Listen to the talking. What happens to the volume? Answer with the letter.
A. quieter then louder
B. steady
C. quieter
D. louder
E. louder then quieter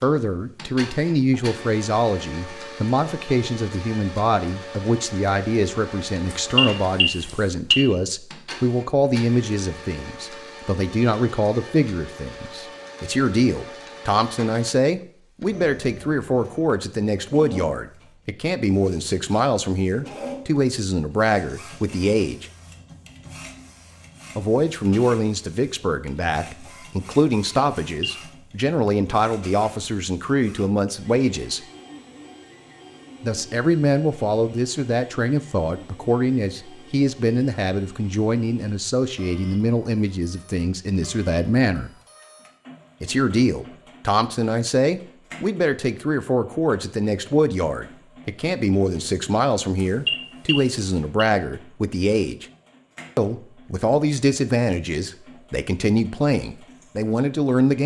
B.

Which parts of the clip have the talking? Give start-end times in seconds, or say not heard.
0.0-22.4, 24.4-31.6, 33.2-41.9, 43.0-52.5, 53.1-57.8.